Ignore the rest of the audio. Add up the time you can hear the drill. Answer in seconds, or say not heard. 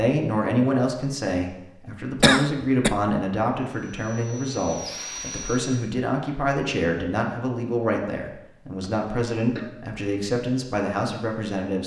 2 s.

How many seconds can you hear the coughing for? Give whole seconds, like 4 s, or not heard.
2 s.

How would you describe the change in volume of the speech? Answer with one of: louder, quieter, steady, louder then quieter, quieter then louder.
steady.